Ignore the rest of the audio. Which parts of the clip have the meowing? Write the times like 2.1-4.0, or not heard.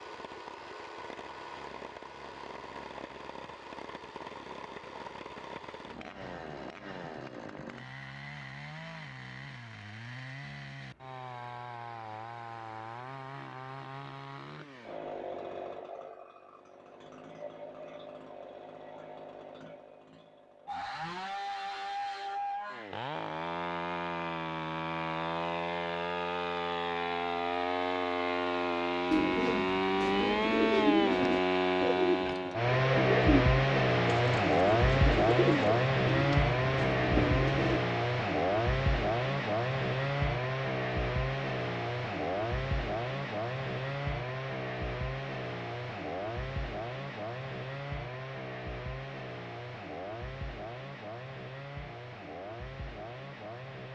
not heard.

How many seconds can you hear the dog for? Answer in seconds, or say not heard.
not heard.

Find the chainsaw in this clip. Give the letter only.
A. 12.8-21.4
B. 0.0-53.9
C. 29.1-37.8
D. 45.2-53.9
B.